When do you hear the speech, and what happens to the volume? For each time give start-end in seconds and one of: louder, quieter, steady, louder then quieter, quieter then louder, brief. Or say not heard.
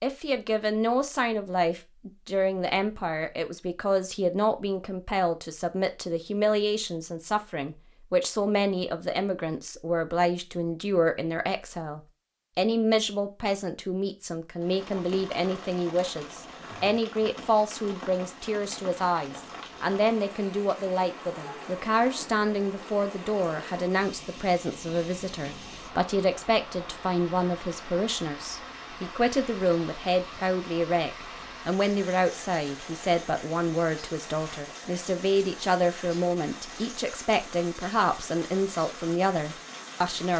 0.0-40.3 steady.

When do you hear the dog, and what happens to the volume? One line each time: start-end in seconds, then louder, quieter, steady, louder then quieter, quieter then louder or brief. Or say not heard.
not heard.